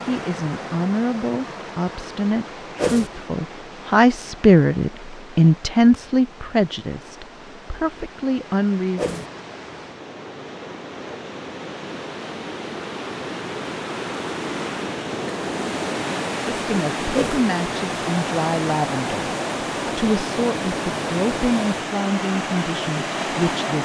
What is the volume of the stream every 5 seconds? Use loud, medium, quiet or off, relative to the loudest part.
medium, quiet, medium, loud, loud.